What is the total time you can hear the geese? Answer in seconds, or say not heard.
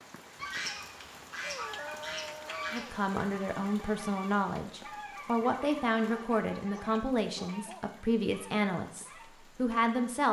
9 s.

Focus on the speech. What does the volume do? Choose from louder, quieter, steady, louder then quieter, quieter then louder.
steady.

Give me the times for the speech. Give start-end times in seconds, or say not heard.
2.7-10.2.